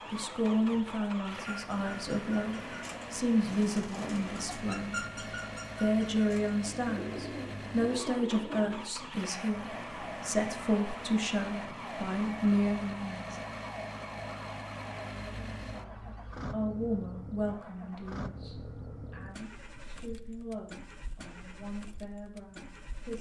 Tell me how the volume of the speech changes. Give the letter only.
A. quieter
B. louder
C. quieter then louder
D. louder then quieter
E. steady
A.